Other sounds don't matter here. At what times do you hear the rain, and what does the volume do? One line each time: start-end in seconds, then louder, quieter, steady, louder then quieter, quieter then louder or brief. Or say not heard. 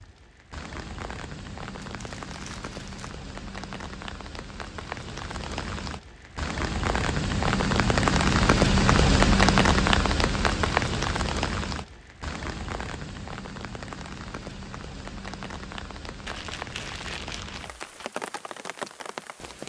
0.0-19.6 louder then quieter.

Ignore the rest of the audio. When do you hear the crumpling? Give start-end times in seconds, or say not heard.
1.8-3.1, 16.2-18.1.